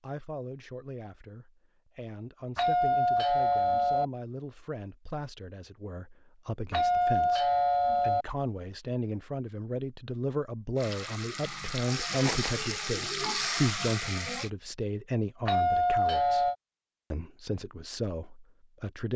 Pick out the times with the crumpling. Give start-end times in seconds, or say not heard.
12.2-12.7.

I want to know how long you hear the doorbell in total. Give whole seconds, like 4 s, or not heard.
4 s.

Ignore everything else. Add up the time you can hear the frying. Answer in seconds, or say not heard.
4 s.